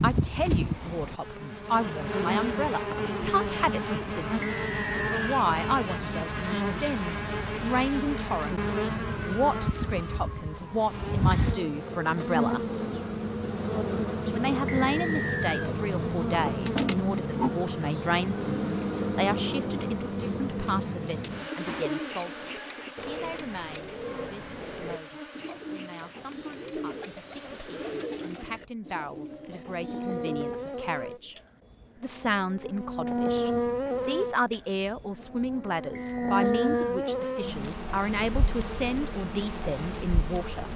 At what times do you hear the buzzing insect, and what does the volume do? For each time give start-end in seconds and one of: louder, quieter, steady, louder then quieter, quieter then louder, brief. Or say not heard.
0.0-40.7 quieter then louder.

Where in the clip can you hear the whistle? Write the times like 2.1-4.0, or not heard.
4.4-5.4, 14.7-15.7, 36.0-37.0.